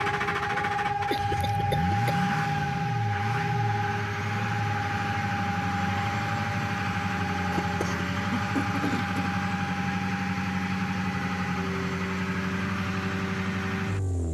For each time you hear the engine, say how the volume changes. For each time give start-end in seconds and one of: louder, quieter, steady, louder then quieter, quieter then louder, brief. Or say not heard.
0.0-14.2 steady.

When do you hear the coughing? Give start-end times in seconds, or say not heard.
1.1-2.3, 7.5-9.4.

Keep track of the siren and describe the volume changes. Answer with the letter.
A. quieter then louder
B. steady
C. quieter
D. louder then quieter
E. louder
C.